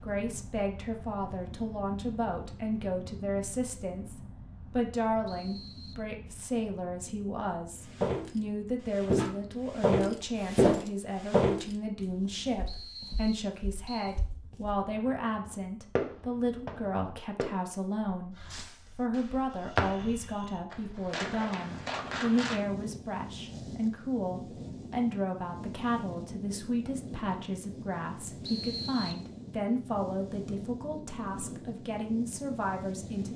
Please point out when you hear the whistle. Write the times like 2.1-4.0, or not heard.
5.2-6.0, 12.7-14.2, 28.4-29.2.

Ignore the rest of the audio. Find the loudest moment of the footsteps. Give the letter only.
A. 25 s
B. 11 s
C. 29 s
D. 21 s
B.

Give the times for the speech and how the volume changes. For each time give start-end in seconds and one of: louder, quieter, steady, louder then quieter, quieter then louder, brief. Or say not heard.
0.0-33.3 steady.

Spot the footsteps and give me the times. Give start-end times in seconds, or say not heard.
7.8-14.8.